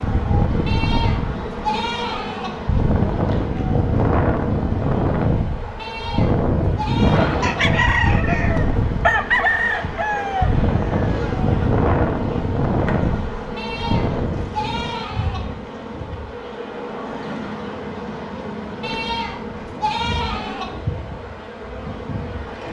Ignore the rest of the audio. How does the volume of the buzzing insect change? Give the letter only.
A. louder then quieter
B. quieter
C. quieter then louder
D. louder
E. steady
E.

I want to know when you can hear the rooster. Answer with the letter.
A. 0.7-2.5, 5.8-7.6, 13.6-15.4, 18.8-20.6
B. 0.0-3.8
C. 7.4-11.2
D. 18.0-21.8
C.